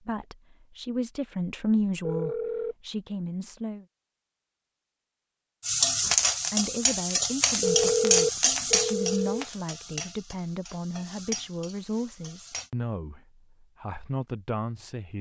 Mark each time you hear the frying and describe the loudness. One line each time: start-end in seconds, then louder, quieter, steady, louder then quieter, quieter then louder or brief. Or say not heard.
5.6-12.7 quieter.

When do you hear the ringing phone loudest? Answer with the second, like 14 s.
8 s.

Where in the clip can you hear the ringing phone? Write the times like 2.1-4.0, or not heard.
2.0-2.8, 7.6-9.4.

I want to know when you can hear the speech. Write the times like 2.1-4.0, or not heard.
0.0-3.9, 6.5-15.1.